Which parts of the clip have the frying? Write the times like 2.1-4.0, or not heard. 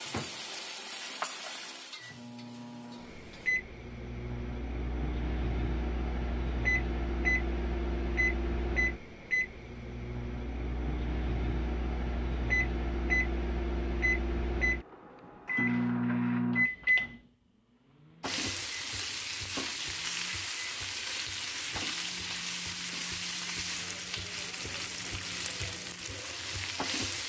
0.0-3.5, 18.2-27.2.